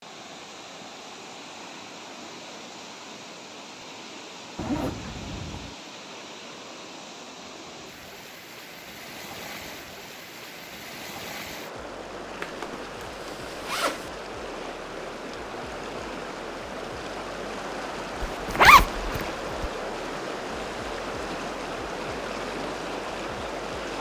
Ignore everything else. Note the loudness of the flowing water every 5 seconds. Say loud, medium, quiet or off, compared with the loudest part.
medium, medium, medium, loud, loud.